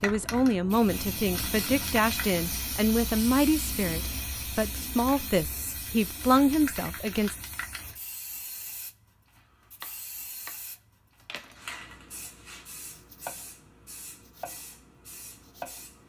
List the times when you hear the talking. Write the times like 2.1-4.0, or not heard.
0.0-7.4.